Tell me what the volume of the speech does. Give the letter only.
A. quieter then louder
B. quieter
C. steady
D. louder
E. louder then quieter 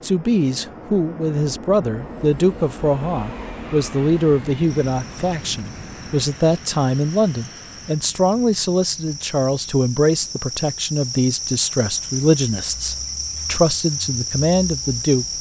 C.